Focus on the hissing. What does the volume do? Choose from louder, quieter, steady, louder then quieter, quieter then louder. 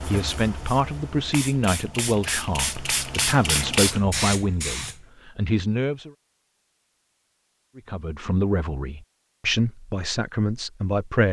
louder.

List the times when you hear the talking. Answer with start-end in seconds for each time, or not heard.
0.0-6.1, 7.8-11.2.